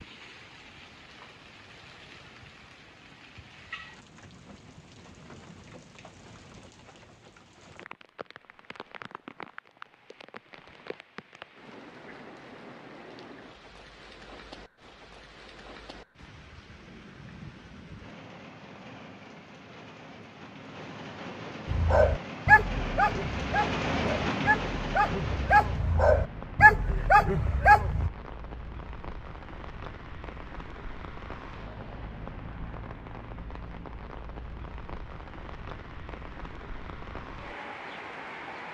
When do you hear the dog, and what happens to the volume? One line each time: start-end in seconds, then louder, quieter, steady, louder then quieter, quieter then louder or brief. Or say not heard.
21.6-28.1 quieter then louder.